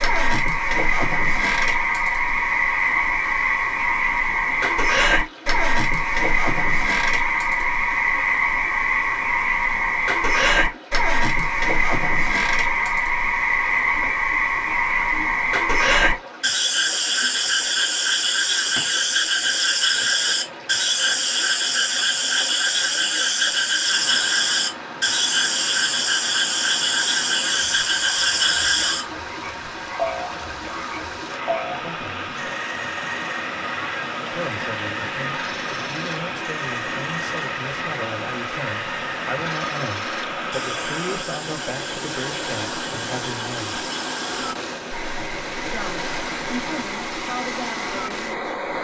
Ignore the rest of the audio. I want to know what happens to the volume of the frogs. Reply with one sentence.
The loudness of the frogs goes down.